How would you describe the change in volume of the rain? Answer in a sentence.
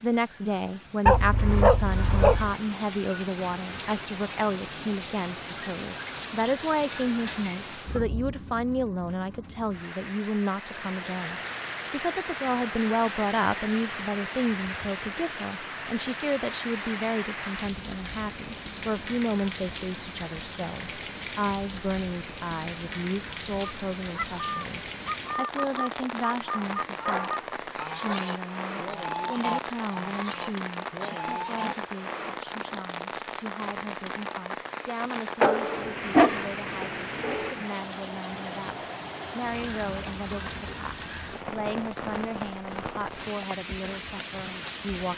The volume of the rain stays about the same.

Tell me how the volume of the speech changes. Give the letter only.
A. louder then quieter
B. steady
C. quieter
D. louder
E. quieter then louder
C.